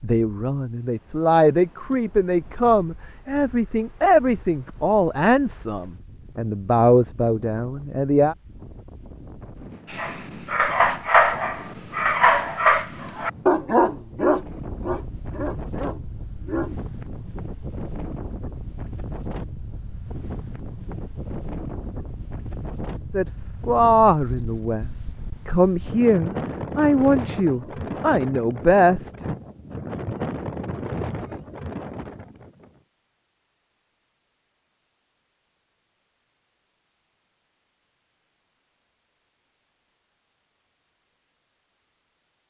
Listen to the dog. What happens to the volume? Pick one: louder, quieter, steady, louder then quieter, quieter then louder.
quieter.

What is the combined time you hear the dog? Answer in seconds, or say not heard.
7 s.